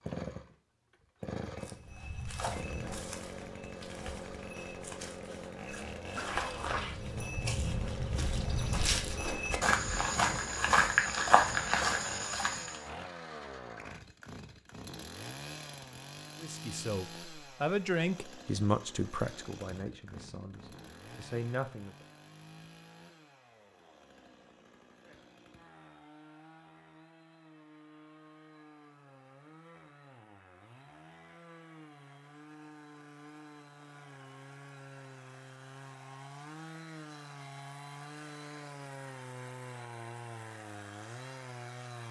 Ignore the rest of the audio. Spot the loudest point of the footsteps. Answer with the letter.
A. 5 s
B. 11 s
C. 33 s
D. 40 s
B.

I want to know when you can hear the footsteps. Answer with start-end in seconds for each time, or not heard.
1.6-12.8.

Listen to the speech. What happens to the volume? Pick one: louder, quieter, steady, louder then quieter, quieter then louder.
quieter then louder.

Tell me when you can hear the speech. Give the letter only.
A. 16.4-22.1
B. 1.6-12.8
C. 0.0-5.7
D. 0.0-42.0
A.